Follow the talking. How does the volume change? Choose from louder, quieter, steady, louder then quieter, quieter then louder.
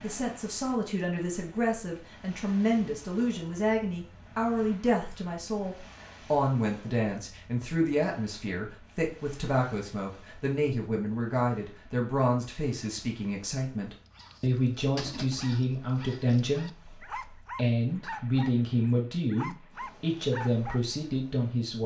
steady.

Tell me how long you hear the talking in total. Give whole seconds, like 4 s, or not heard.
22 s.